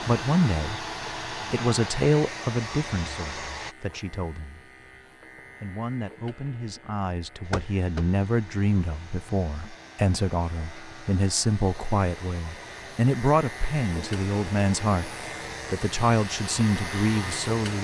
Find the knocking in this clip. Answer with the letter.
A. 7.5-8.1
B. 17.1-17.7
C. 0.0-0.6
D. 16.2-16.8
A.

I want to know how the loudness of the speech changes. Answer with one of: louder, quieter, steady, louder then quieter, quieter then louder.
quieter then louder.